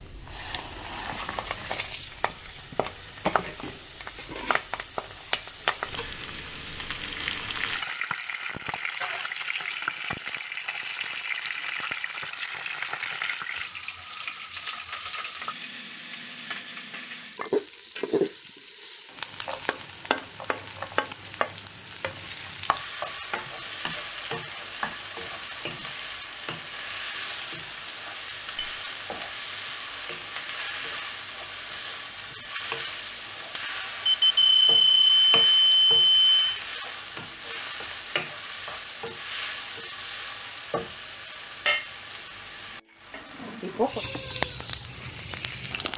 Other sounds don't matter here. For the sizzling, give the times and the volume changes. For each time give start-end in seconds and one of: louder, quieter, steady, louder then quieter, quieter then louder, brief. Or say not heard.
0.0-45.9 steady.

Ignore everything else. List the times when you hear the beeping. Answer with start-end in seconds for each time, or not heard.
34.0-36.6.